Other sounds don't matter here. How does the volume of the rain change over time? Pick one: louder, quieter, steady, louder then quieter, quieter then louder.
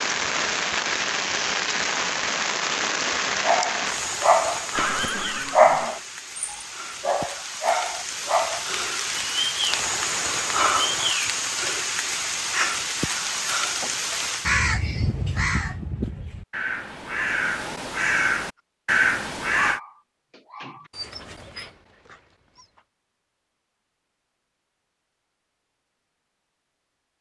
quieter then louder.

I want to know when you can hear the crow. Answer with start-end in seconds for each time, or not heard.
12.5-19.8.